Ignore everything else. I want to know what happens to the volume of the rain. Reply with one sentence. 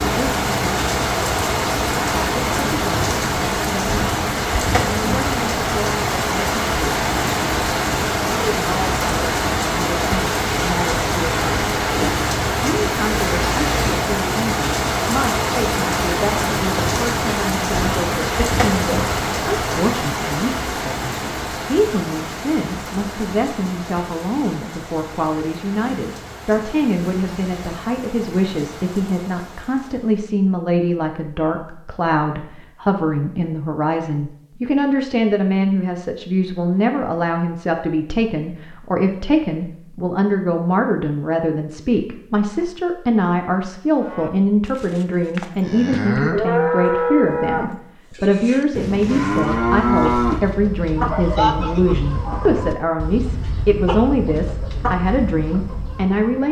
The loudness of the rain goes down.